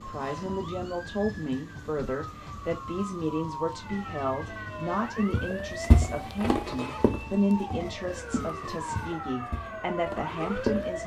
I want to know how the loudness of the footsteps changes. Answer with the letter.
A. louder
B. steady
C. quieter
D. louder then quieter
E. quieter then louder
C.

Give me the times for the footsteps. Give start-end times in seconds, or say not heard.
5.3-11.0.